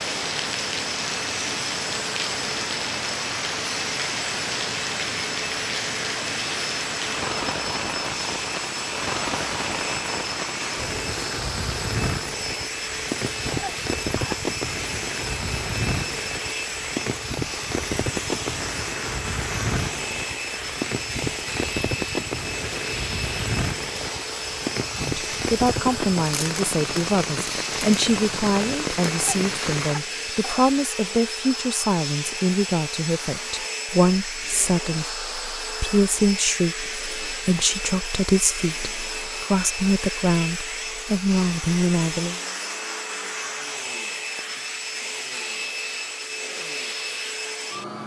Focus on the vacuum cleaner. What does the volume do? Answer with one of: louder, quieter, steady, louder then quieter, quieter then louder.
steady.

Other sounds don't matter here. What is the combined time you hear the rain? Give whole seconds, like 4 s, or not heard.
30 s.